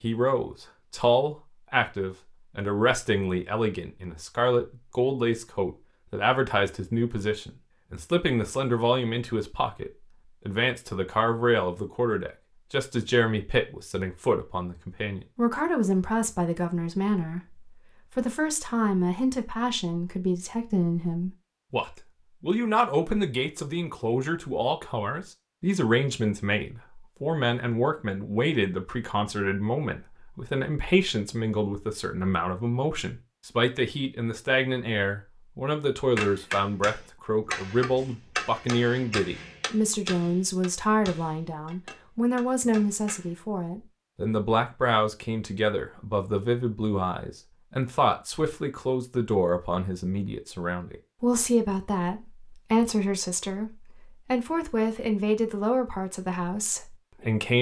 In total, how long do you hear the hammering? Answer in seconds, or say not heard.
7 s.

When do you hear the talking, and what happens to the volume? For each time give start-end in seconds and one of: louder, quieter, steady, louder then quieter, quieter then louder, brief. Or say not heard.
0.0-57.5 steady.